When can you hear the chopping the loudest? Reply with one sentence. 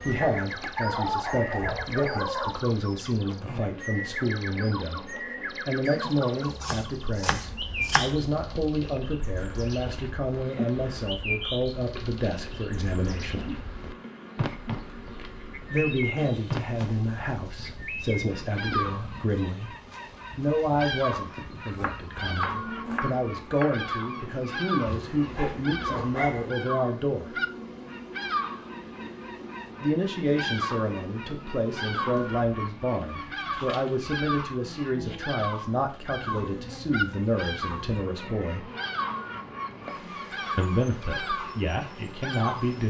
The loudest moment of the chopping is at 8 seconds.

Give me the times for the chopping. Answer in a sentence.
You can hear the chopping from 5.8 to 8.2 s and from 21.6 to 23.9 s.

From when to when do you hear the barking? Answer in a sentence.
The barking can be heard from 0.2 to 2.6 s and from 24.9 to 26.4 s.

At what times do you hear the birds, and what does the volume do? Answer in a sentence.
The birds can be heard from 0.0 to 42.8 s, at a steady volume.